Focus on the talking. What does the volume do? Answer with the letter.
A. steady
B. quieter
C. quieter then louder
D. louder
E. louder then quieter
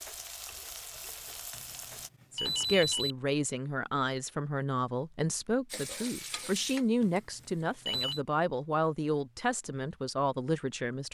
A.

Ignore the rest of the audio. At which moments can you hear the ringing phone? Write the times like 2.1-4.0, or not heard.
1.5-3.1, 7.0-8.2.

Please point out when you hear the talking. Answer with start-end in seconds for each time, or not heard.
2.3-11.0.